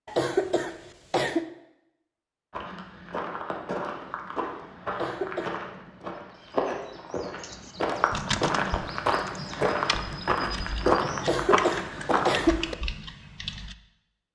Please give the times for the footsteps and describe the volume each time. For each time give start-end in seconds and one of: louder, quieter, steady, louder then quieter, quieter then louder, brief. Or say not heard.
2.5-12.7 louder.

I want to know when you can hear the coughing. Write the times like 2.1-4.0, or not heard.
0.1-1.4, 4.9-5.5, 11.2-12.8.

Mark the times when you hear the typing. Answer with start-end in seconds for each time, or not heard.
7.4-13.8.